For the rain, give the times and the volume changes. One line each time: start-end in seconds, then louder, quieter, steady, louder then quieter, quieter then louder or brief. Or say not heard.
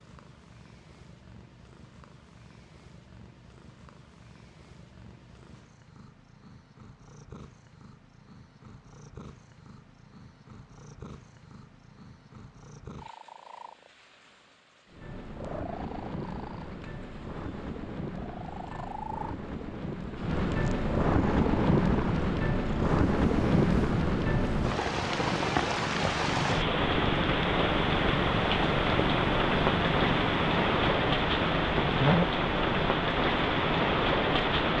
14.9-34.7 louder.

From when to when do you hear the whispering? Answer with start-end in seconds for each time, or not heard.
not heard.